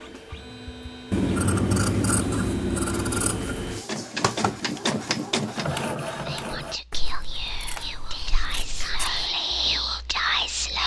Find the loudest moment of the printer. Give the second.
5 s.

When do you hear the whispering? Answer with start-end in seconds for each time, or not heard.
6.2-10.8.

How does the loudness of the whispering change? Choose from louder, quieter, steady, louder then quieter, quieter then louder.
louder.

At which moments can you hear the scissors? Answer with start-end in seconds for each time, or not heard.
1.1-3.8, 6.9-9.3.